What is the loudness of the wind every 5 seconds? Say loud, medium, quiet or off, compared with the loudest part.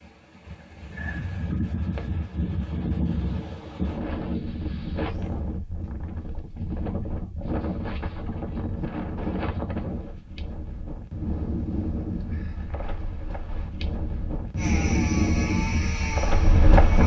medium, medium, medium, loud.